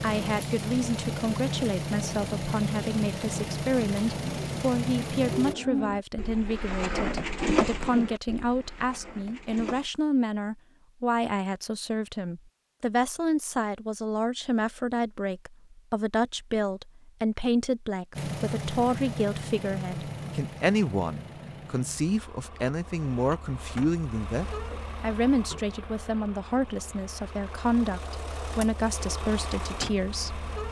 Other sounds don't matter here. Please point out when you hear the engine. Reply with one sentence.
You can hear the engine from 0.0 to 5.5 s and from 18.1 to 30.6 s.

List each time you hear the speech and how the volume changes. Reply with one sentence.
The speech can be heard from 0.0 to 30.4 s, at a steady volume.